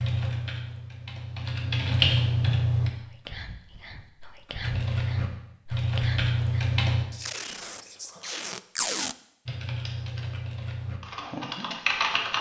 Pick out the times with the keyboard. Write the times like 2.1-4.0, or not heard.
0.0-2.9, 4.6-7.0, 9.4-12.3.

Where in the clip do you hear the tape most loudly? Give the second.
9 s.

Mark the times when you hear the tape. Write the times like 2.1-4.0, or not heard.
7.2-9.2.